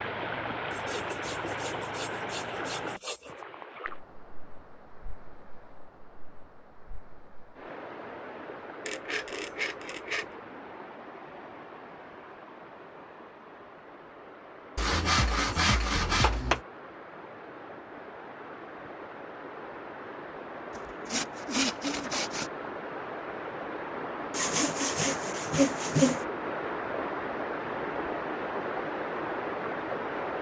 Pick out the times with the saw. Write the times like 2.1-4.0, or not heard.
0.7-3.5, 8.8-10.2, 14.8-16.6, 20.8-22.5, 24.3-26.2.